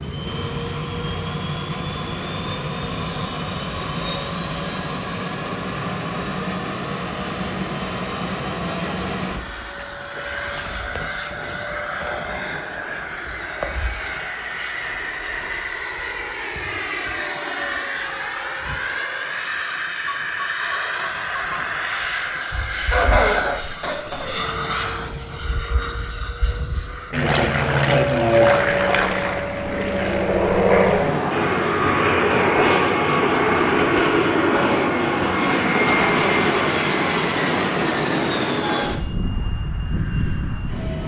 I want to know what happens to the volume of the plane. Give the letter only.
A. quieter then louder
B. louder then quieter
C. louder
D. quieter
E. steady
C.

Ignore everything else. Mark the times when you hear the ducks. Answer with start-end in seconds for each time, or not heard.
not heard.